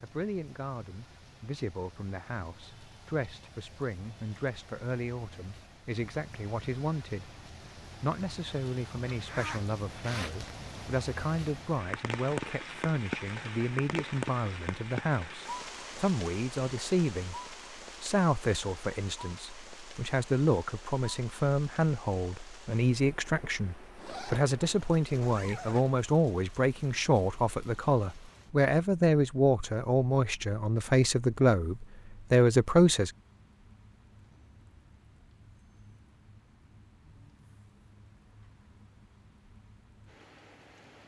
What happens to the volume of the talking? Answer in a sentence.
The volume of the talking goes up.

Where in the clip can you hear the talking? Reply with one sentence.
You can hear the talking from 0.0 to 7.3 s, from 8.0 to 17.4 s and from 18.0 to 33.1 s.